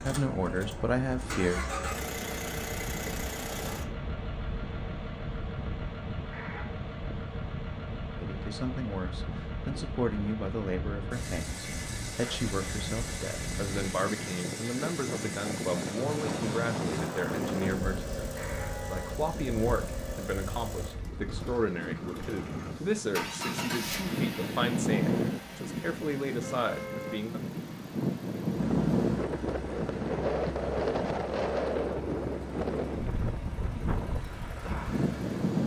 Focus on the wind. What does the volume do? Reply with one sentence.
The volume of the wind goes up.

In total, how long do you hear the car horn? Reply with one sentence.
The car horn can be heard for 2 seconds in total.